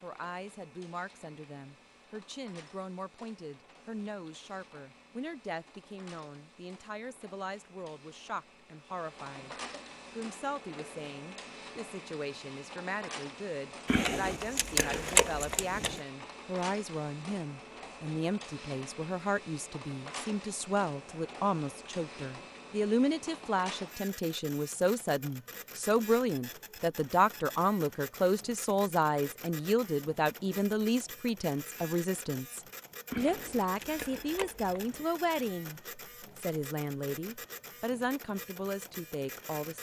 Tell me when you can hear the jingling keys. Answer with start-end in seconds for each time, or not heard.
13.8-16.0, 33.1-35.0.